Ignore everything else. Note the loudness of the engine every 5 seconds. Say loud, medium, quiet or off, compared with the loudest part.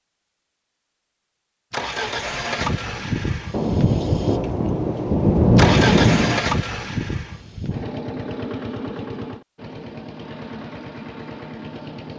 loud, loud, medium.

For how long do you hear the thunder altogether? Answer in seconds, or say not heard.
3 s.